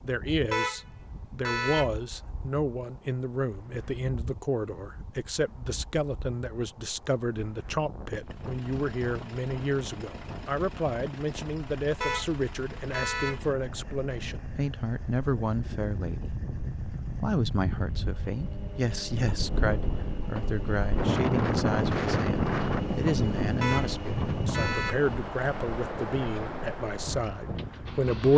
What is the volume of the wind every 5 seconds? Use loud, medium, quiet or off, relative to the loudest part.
quiet, quiet, quiet, medium, loud, medium.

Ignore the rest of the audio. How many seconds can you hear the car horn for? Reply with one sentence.
You can hear the car horn for 4 seconds altogether.